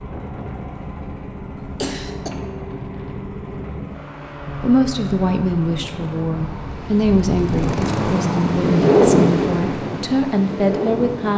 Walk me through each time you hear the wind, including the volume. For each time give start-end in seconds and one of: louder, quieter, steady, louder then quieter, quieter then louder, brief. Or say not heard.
0.0-11.3 louder.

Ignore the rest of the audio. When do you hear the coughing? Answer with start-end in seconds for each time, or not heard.
1.6-2.3.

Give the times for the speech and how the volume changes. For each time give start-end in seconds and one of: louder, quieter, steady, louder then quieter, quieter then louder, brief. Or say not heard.
4.6-11.3 steady.